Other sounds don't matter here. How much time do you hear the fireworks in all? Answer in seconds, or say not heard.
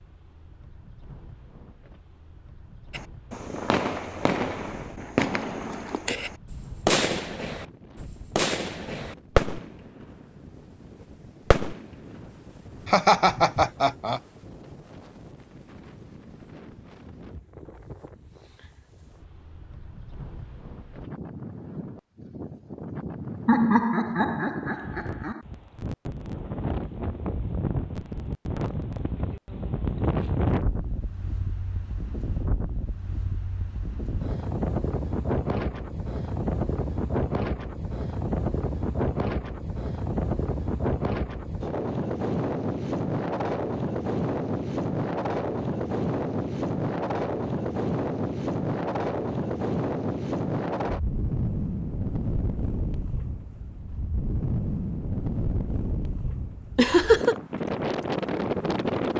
9 s.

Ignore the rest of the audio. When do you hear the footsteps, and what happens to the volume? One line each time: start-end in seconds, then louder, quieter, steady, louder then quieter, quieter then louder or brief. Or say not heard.
not heard.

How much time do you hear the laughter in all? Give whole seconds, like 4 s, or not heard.
4 s.